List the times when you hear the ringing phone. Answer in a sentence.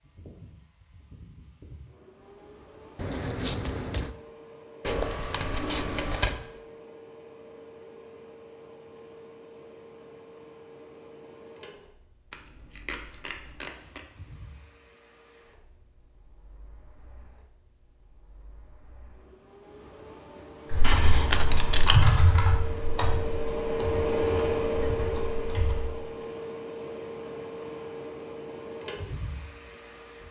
You can't hear the ringing phone here.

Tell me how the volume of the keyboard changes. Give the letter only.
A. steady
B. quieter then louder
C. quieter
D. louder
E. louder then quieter
C.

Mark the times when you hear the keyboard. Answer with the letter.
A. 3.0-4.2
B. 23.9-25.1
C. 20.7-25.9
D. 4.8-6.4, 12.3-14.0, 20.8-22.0
C.